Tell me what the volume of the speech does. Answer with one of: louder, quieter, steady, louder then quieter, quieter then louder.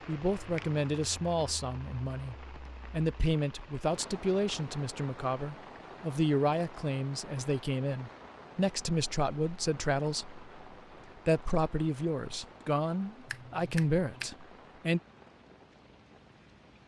steady.